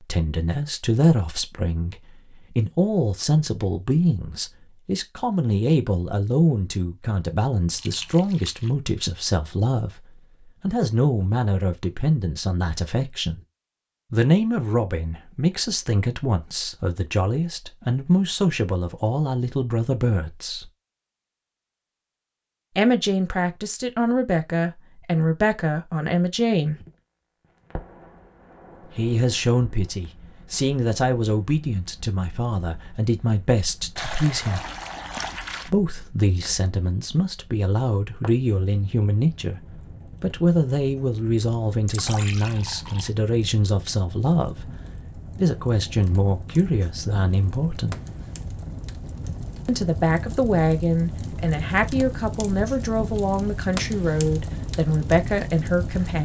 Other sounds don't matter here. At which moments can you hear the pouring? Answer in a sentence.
The pouring can be heard from 7.8 to 8.8 s, from 34.0 to 35.7 s and from 41.9 to 43.1 s.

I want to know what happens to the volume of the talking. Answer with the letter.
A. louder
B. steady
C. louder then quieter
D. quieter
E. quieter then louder
B.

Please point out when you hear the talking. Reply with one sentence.
You can hear the talking from 0.0 to 13.4 s, from 14.1 to 20.7 s, from 22.8 to 26.8 s, from 28.9 to 34.6 s, from 35.6 to 48.0 s and from 49.6 to 56.2 s.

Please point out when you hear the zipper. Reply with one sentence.
The zipper can't be heard in this clip.